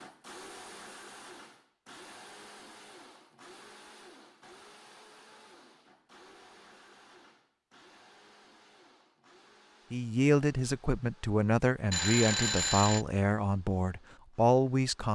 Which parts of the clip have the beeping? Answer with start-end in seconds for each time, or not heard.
11.9-13.1.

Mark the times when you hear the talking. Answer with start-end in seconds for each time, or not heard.
9.9-15.1.